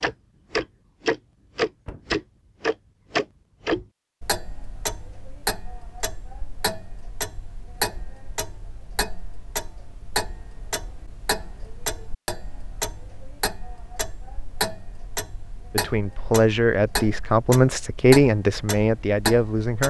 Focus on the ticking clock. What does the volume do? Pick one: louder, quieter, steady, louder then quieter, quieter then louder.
quieter.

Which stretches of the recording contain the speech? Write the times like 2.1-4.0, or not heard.
15.7-19.8.